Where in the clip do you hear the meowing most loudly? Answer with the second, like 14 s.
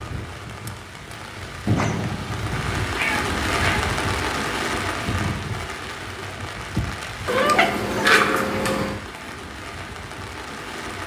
8 s.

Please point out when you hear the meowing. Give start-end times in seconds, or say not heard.
1.6-3.9, 7.2-9.0.